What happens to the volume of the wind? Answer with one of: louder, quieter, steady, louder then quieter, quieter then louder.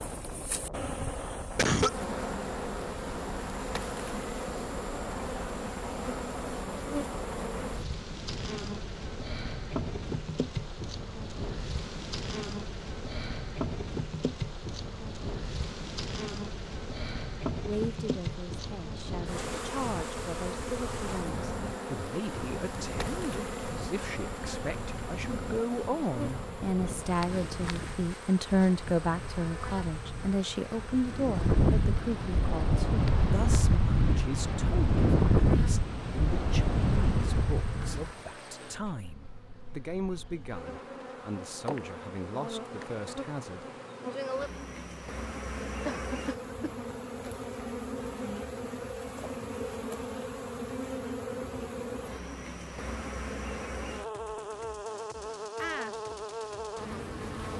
louder.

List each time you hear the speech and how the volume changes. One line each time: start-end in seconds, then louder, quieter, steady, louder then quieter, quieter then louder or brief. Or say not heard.
17.6-43.6 louder then quieter.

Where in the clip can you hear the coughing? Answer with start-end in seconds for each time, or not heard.
0.9-1.9, 45.9-46.7.